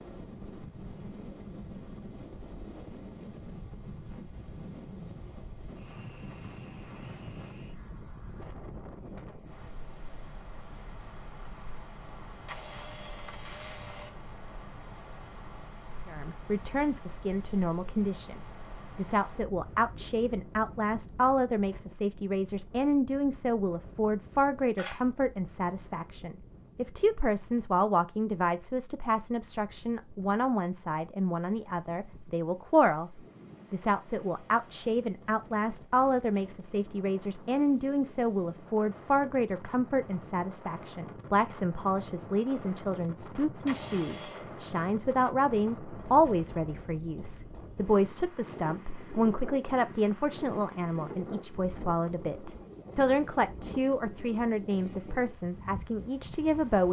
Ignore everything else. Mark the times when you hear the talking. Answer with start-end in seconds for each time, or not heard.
16.1-56.8.